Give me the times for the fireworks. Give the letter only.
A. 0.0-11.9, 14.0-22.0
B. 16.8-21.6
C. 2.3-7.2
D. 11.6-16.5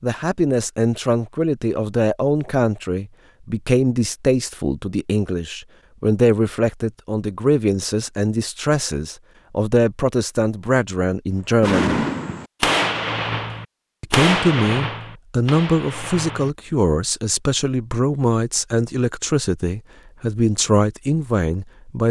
D.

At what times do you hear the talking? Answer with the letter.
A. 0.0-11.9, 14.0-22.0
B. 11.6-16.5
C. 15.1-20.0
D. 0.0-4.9
A.